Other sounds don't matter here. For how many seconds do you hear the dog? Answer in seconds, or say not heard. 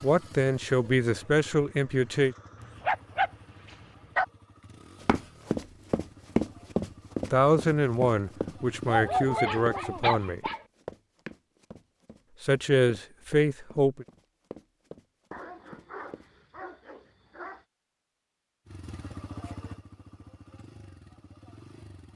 6 s.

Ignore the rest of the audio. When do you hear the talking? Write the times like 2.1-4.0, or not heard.
0.0-2.4, 7.3-10.4, 12.4-14.1.